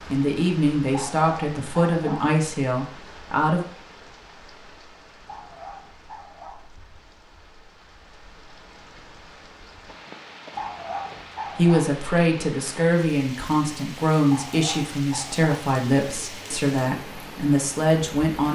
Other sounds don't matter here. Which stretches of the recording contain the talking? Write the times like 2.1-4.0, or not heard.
0.1-3.6, 11.6-18.4.